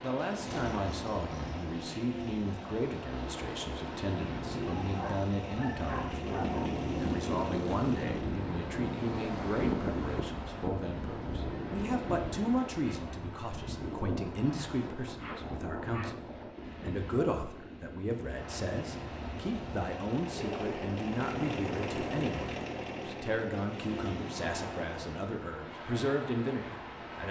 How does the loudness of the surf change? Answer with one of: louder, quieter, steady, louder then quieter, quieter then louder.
louder then quieter.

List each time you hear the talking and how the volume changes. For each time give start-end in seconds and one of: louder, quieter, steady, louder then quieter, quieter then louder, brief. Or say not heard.
0.0-27.2 steady.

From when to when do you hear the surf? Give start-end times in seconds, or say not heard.
0.0-27.2.